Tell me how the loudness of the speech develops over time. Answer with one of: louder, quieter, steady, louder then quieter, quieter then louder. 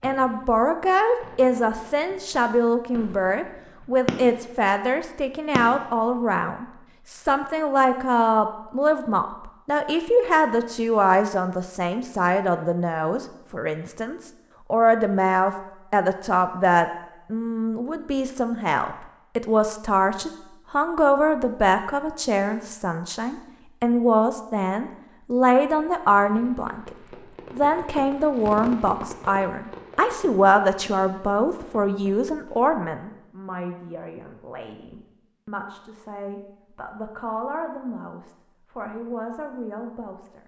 quieter.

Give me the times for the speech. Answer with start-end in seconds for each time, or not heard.
0.0-40.4.